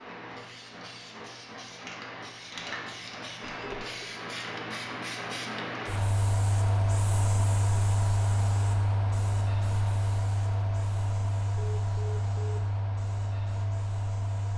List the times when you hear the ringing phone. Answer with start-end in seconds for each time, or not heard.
3.4-4.0, 11.6-12.6.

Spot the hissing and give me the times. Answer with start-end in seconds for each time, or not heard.
0.0-14.5.